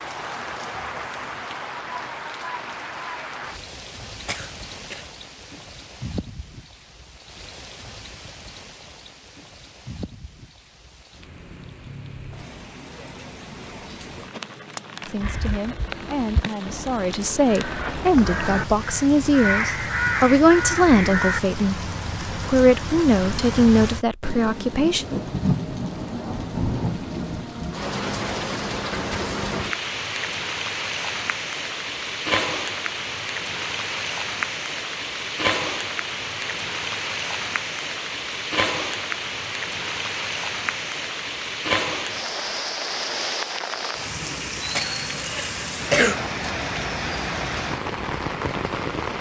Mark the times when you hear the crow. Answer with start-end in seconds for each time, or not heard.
15.2-21.4.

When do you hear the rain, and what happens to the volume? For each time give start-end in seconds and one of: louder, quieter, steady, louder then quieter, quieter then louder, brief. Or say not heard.
0.0-49.1 louder.